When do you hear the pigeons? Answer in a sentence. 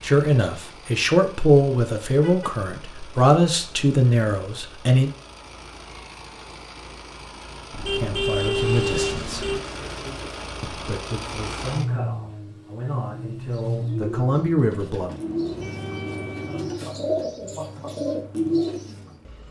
You can hear the pigeons from 8.6 to 10.5 s and from 13.1 to 18.9 s.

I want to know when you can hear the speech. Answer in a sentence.
You can hear the speech from 0.0 to 5.1 s, from 7.9 to 9.4 s and from 10.6 to 15.1 s.